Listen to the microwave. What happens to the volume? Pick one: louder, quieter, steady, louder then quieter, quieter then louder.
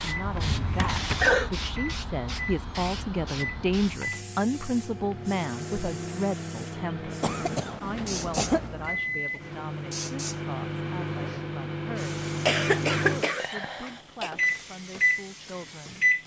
louder.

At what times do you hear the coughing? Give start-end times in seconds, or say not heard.
0.7-1.5, 7.2-8.7, 12.4-14.3.